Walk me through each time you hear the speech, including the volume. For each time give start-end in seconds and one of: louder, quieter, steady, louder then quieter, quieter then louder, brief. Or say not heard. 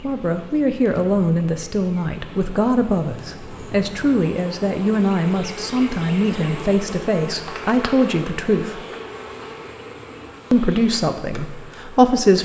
0.0-8.8 steady
10.5-12.3 brief.